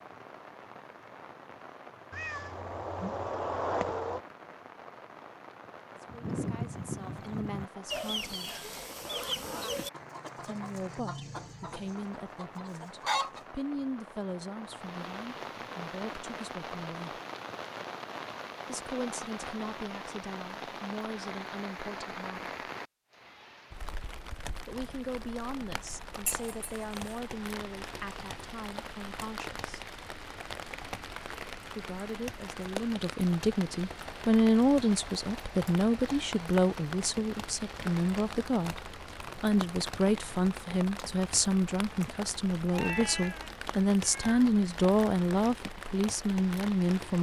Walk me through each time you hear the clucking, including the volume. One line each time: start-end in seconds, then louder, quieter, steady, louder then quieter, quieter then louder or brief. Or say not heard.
6.0-13.4 quieter.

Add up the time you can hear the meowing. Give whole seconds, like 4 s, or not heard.
5 s.